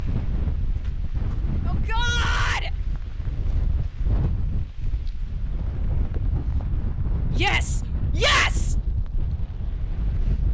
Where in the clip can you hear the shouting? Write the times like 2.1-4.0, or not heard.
1.6-2.7, 7.3-8.8.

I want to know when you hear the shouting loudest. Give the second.
8 s.